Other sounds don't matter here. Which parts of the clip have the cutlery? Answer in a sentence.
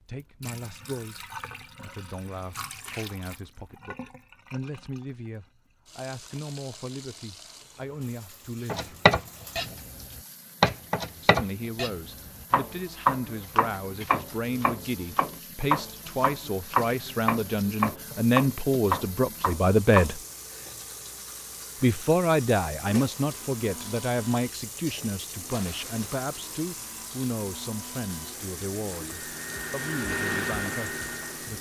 The cutlery can't be heard in this clip.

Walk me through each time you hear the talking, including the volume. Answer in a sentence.
The talking can be heard from 0.1 to 8.9 s, at a steady volume; from 11.2 to 20.2 s, getting louder; and from 21.8 to 31.5 s, getting quieter.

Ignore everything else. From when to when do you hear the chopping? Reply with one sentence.
The chopping can be heard from 8.7 to 20.1 s.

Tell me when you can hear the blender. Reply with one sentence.
The blender can be heard from 23.1 to 31.5 s.